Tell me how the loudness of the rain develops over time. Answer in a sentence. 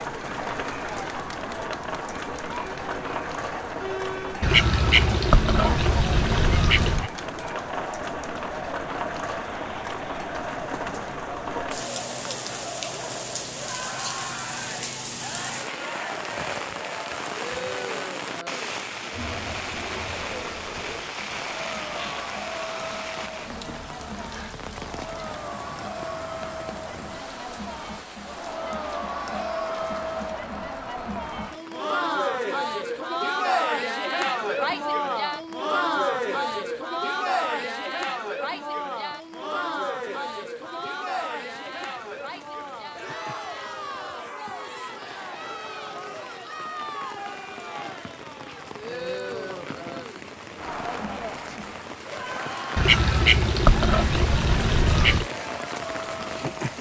The volume of the rain goes down, then up.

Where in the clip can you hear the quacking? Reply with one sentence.
The quacking can be heard from 4.4 to 7.1 s and from 52.8 to 55.3 s.